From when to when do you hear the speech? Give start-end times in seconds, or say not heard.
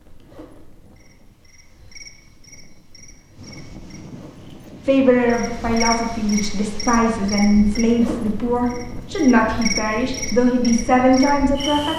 4.8-11.9.